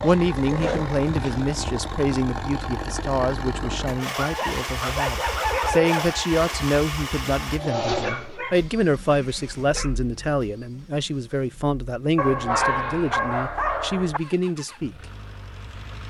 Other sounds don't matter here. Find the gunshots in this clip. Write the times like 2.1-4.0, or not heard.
not heard.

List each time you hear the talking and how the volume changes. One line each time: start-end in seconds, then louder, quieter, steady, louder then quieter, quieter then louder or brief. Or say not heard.
0.0-14.9 steady.